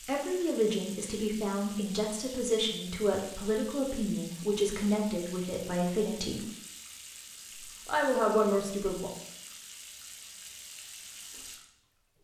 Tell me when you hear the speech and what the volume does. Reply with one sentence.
The speech can be heard from 0.1 to 6.5 s, at a steady volume; and briefly from 7.8 to 9.1 s.